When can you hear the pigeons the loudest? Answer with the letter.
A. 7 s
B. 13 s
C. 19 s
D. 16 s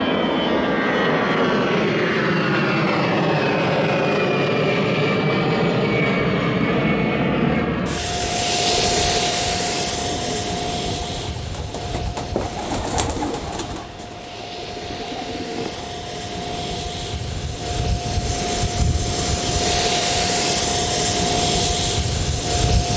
B.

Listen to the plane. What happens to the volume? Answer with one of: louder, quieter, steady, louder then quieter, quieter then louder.
quieter then louder.